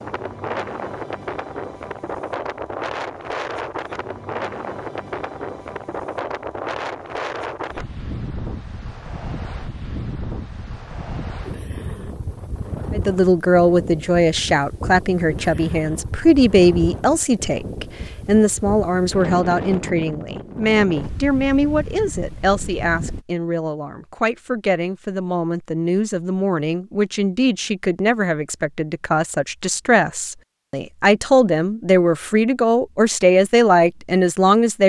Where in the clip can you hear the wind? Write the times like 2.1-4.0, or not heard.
0.0-23.2.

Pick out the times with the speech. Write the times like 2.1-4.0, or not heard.
12.9-34.8.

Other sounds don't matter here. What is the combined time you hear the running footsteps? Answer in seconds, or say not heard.
not heard.